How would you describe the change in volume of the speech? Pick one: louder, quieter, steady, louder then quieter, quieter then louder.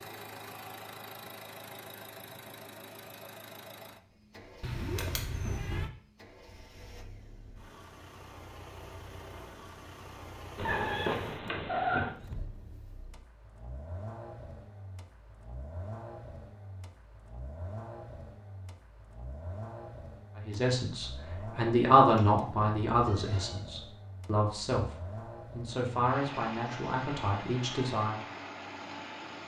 quieter.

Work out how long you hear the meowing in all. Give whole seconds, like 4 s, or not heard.
4 s.